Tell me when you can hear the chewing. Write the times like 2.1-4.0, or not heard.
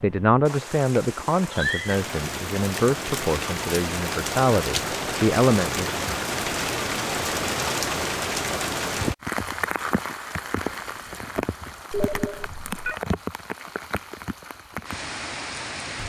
not heard.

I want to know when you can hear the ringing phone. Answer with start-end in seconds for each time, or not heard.
11.9-13.0.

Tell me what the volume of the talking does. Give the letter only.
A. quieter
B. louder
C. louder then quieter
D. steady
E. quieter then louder
E.